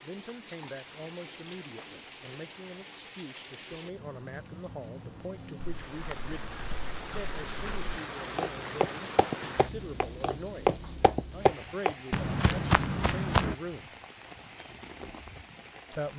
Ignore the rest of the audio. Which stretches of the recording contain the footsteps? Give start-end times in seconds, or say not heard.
5.5-13.6.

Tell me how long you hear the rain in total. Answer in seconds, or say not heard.
16 s.